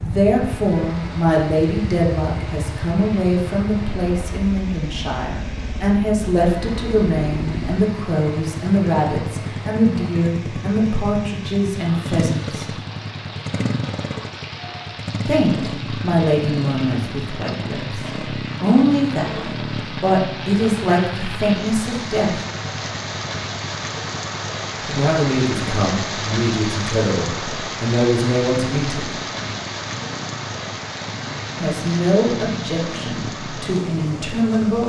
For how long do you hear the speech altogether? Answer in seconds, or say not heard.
27 s.